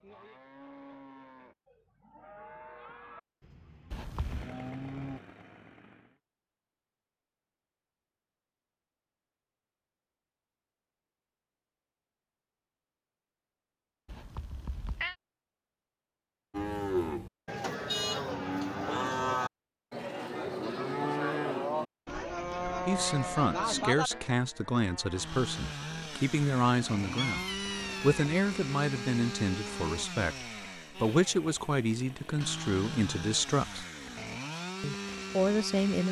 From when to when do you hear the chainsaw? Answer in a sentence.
The chainsaw can be heard from 4.1 to 6.2 s and from 25.1 to 36.0 s.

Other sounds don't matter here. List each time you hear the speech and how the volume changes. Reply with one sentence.
The speech can be heard from 22.9 to 33.9 s, at a steady volume; and briefly from 34.8 to 36.0 s.